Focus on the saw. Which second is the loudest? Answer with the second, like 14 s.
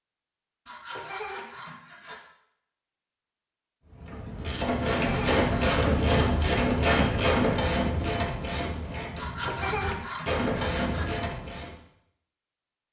10 s.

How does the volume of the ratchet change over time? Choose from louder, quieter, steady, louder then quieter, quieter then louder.
quieter then louder.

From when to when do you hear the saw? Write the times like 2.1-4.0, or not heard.
0.7-2.2, 4.6-6.5, 9.2-11.2.